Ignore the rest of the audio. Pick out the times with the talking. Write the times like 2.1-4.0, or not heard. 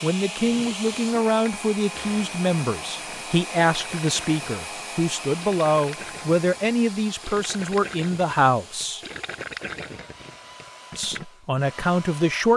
0.0-9.0, 10.9-12.5.